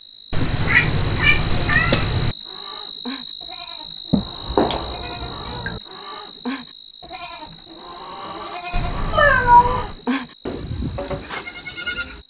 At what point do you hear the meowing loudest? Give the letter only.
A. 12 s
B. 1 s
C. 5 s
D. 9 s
D.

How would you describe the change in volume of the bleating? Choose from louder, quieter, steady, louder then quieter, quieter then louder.
louder.